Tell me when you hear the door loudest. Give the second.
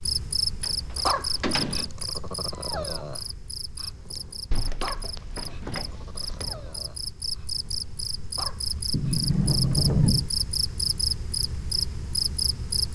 10 s.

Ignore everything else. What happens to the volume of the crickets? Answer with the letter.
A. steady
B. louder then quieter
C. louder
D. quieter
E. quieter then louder
E.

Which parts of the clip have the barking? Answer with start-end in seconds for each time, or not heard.
1.1-10.1.